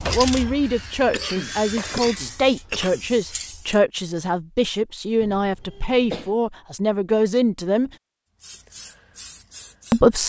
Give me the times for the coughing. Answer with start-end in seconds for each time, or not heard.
1.1-3.1, 5.2-6.3.